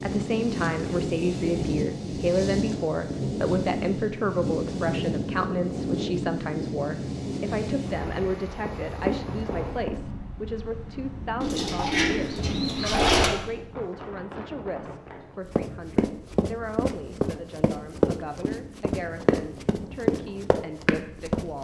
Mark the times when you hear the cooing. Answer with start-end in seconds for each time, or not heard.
11.4-13.3.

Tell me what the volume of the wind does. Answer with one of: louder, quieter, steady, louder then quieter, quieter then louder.
quieter.